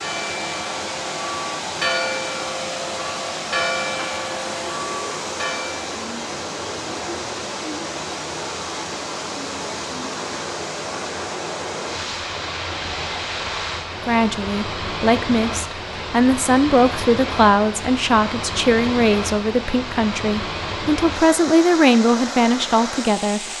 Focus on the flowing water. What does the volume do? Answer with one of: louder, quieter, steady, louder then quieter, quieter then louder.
steady.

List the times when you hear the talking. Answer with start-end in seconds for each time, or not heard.
14.1-23.4.